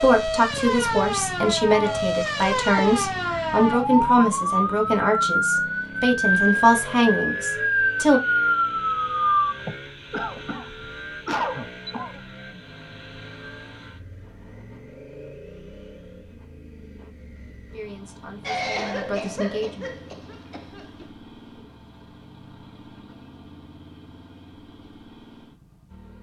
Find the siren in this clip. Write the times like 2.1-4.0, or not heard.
0.0-9.6.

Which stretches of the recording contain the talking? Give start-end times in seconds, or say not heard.
0.0-8.2, 17.7-19.9.